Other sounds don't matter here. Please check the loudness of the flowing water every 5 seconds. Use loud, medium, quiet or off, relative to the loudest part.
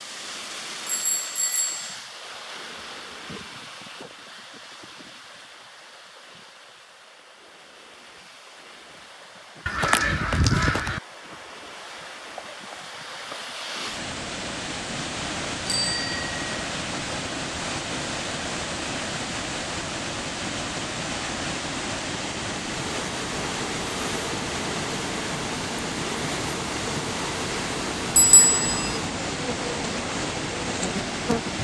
medium, quiet, medium, loud, loud, loud, loud.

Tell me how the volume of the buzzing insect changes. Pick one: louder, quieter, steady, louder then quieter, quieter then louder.
steady.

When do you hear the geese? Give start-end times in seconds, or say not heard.
9.7-11.0.